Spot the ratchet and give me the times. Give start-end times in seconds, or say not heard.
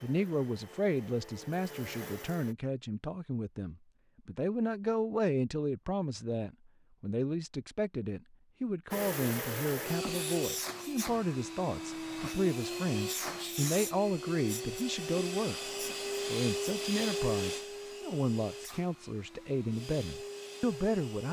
not heard.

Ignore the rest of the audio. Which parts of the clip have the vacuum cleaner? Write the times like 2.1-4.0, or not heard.
0.0-2.5, 8.9-21.2.